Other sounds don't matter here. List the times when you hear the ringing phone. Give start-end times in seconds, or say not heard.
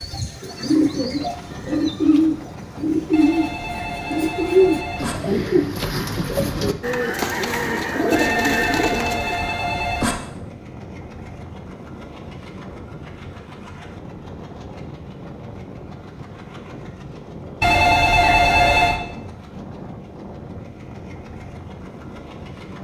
3.1-5.2, 8.1-10.2, 17.6-19.0.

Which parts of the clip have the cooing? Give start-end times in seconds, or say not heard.
0.0-9.6.